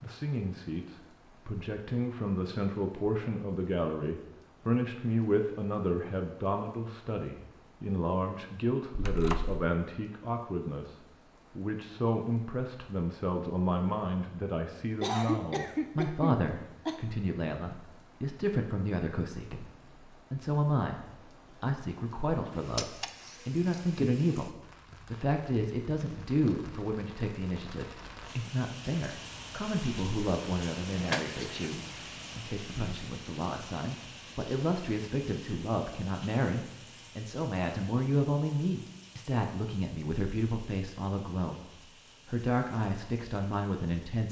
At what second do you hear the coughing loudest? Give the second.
15 s.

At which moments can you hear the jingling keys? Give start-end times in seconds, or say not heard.
8.9-9.7, 22.8-24.1, 30.9-31.8.